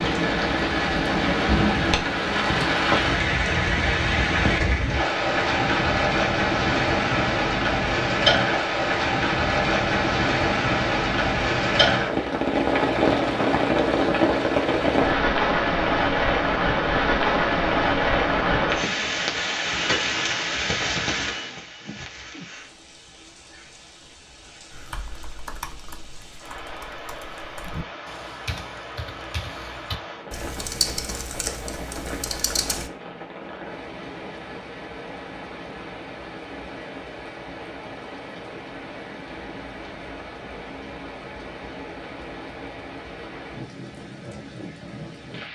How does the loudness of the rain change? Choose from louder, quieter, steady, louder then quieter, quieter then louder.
quieter.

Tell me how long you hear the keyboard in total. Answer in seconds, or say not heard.
8 s.